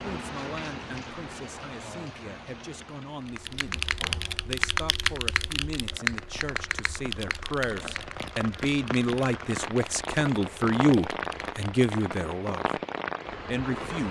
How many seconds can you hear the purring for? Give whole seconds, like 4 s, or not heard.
not heard.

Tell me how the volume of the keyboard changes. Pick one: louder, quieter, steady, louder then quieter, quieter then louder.
quieter.